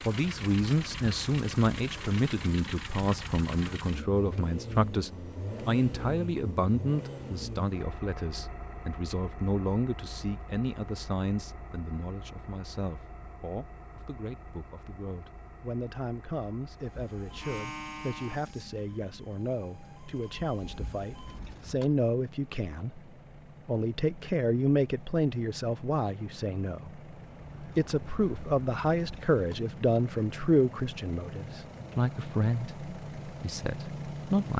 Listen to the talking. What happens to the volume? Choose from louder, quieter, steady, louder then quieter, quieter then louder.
quieter then louder.